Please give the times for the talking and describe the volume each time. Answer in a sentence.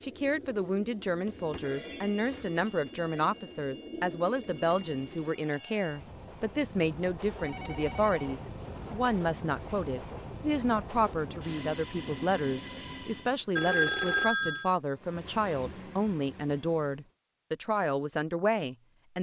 The talking can be heard from 0.0 to 19.1 s, at a steady volume.